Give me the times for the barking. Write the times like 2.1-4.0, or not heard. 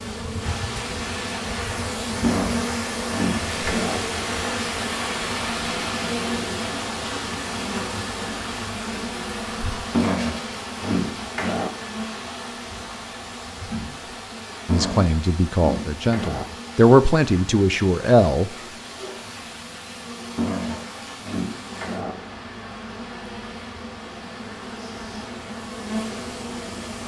2.2-4.0, 9.9-11.7, 14.7-16.4, 20.4-22.1.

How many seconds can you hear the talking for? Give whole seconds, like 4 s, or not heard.
4 s.